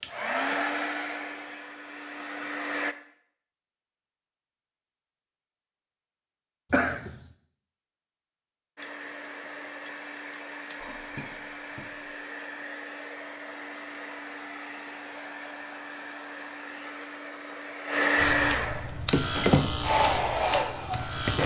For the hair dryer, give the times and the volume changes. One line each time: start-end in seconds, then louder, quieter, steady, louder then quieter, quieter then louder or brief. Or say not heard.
0.0-3.0 brief
8.8-21.4 louder.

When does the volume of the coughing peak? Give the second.
7 s.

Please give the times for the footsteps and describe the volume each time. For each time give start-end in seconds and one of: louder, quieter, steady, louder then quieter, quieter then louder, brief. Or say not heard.
not heard.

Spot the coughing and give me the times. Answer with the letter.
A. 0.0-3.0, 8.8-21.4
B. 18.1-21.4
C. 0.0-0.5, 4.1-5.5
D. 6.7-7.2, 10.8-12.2
D.